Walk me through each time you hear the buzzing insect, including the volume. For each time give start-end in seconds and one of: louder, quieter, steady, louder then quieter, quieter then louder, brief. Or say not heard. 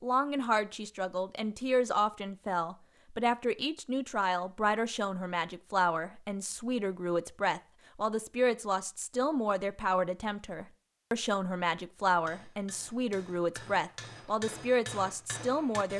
not heard.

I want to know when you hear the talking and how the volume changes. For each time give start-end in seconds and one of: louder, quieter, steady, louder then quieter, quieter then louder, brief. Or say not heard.
0.0-15.9 steady.